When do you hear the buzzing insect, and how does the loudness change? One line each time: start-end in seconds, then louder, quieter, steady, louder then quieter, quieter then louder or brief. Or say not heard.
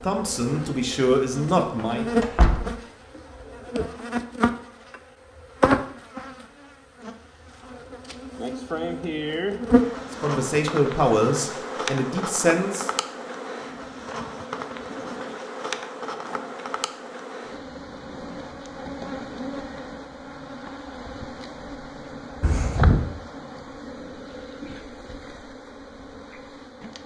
0.0-27.0 quieter.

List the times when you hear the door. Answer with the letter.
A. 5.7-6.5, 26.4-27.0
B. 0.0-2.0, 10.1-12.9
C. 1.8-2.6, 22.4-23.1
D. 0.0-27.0
C.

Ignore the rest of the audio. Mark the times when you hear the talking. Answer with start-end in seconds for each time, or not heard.
0.0-2.0, 10.1-12.9.